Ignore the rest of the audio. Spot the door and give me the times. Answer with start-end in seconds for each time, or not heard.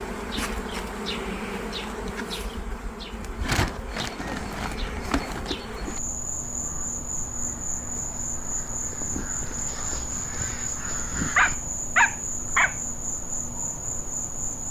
not heard.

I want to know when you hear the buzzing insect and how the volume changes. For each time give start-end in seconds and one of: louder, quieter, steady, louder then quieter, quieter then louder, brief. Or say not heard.
0.0-14.6 steady.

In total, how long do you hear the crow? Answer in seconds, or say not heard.
8 s.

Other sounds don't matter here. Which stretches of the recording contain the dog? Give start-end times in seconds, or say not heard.
11.3-12.8.